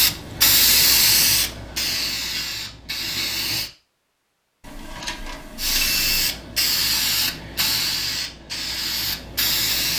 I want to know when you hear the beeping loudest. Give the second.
6 s.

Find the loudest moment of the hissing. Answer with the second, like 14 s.
1 s.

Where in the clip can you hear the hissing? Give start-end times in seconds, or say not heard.
0.0-3.7, 5.5-9.9.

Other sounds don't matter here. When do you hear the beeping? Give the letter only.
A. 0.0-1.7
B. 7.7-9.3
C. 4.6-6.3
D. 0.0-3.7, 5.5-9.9
C.